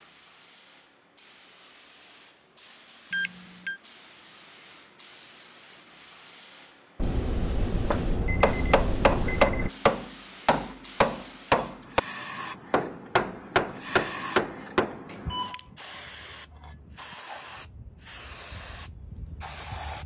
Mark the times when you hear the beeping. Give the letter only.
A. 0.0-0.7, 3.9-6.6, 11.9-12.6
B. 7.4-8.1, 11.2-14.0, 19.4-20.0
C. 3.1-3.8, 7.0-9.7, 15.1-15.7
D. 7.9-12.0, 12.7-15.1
C.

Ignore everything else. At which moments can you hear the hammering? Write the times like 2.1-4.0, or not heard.
7.9-12.0, 12.7-15.1.